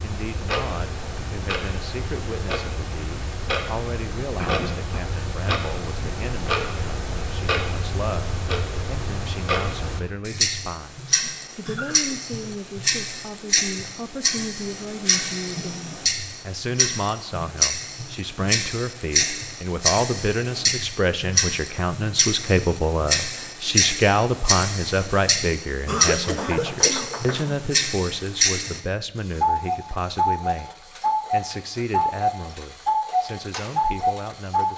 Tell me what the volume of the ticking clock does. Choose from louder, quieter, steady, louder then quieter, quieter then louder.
louder.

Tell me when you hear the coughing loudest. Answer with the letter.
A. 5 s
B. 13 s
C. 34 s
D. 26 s
D.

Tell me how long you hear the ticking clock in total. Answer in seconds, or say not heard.
34 s.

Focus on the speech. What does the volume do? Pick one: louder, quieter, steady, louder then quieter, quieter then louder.
louder then quieter.